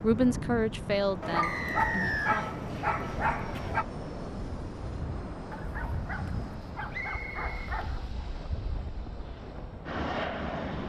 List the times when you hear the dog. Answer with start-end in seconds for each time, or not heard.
1.2-3.9, 5.5-8.1.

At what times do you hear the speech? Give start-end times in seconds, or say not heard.
0.0-2.5.